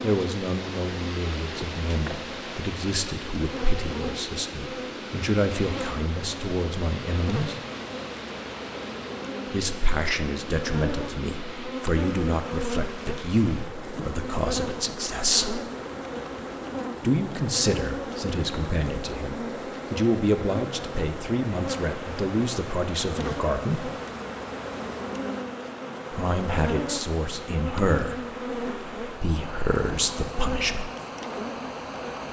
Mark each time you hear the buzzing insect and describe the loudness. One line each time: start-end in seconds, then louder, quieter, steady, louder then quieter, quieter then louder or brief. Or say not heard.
0.0-32.2 steady.